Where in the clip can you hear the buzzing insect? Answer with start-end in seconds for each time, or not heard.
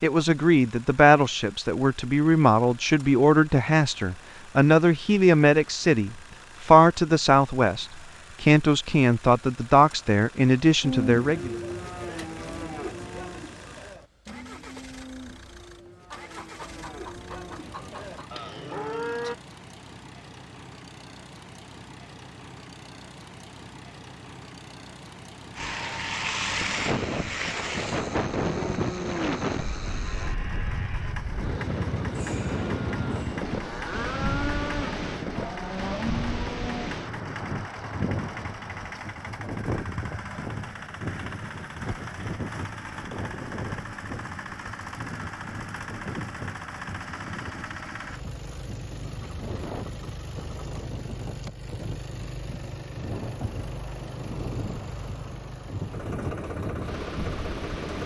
not heard.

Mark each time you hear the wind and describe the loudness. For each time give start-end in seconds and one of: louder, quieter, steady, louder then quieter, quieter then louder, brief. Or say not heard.
25.6-58.0 quieter.